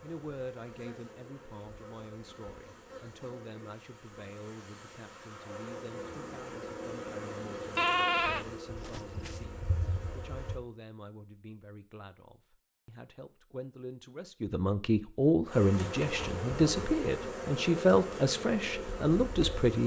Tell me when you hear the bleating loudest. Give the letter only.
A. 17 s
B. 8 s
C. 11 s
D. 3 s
B.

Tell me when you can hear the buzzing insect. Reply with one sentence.
The buzzing insect can be heard from 0.0 to 10.6 s and from 15.4 to 19.8 s.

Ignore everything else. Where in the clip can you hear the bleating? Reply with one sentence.
You can hear the bleating from 7.8 to 9.3 s.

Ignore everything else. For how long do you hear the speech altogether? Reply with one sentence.
The speech can be heard for 20 seconds in total.